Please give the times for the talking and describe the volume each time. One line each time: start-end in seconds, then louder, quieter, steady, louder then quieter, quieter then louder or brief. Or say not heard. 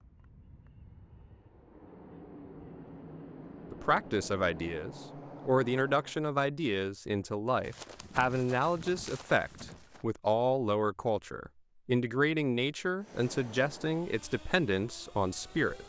3.7-15.8 steady.